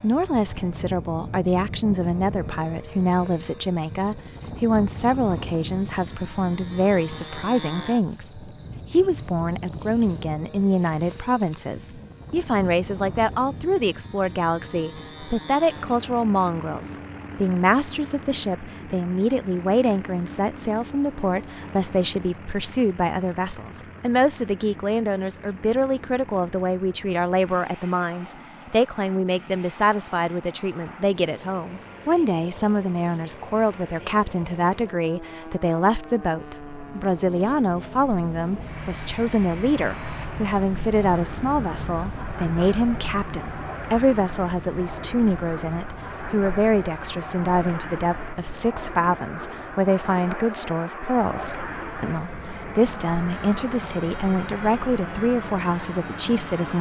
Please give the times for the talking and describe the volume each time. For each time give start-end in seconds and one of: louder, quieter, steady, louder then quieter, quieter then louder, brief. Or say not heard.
0.0-56.7 steady.